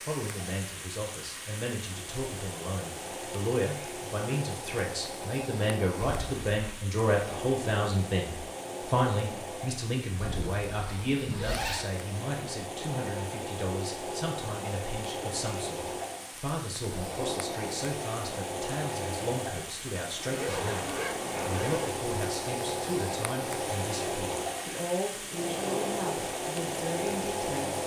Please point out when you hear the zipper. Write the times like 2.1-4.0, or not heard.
6.0-6.8, 10.2-11.8, 20.3-21.9.